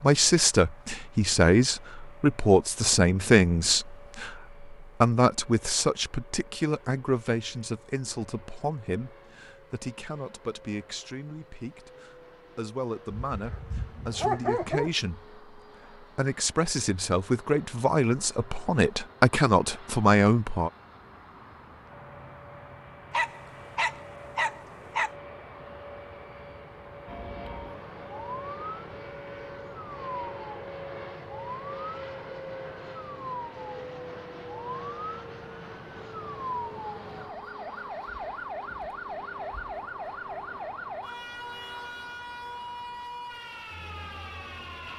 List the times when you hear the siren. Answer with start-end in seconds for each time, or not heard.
27.1-44.9.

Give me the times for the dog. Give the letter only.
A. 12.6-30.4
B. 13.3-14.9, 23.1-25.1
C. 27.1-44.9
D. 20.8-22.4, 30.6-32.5
B.